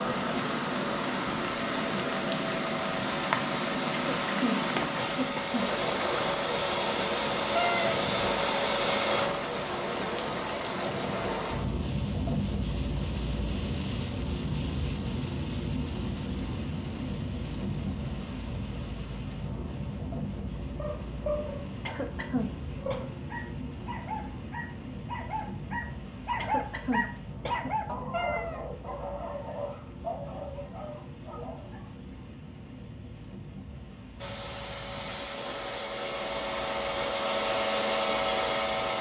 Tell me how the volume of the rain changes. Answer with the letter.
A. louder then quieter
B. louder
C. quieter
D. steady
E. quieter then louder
C.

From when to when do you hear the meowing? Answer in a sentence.
The meowing can be heard from 7.5 to 8.0 s and from 28.1 to 28.6 s.